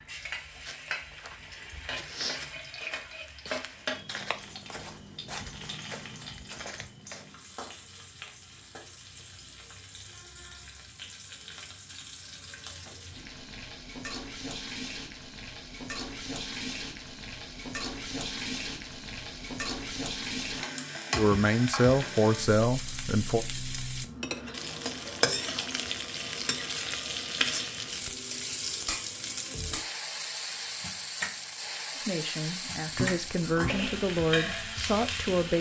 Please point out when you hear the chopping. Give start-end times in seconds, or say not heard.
32.9-33.9.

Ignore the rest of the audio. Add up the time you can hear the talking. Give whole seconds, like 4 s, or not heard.
6 s.